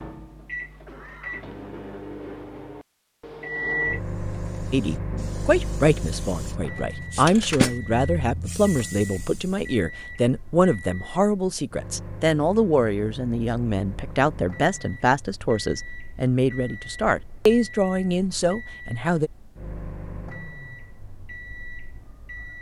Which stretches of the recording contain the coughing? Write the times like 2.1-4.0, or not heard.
0.8-1.4.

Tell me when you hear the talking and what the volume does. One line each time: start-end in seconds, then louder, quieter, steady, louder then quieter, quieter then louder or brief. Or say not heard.
4.7-19.3 steady.